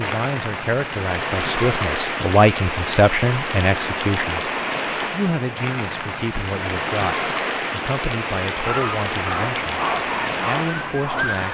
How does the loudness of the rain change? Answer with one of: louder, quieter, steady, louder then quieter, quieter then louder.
steady.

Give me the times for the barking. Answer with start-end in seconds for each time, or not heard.
8.6-11.4.